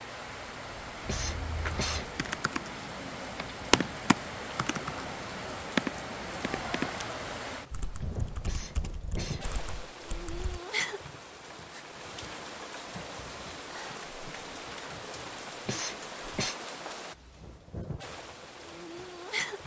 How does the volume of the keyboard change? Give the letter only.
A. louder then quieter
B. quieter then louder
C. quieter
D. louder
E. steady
A.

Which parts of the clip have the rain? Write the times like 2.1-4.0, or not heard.
0.0-19.6.